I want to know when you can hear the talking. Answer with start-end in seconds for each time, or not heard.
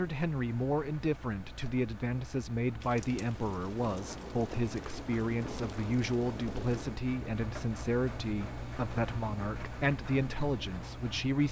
0.0-11.4.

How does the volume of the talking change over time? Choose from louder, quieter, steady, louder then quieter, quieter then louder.
steady.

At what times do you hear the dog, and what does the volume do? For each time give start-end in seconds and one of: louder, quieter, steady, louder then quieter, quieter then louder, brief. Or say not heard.
not heard.